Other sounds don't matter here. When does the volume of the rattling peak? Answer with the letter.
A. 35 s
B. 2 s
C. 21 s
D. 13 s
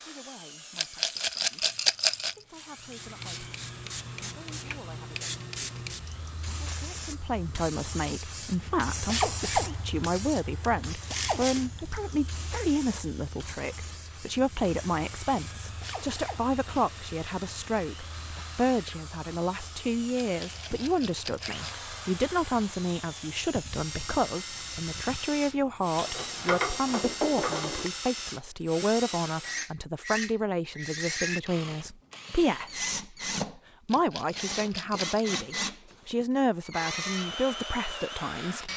B.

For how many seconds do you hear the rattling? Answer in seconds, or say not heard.
5 s.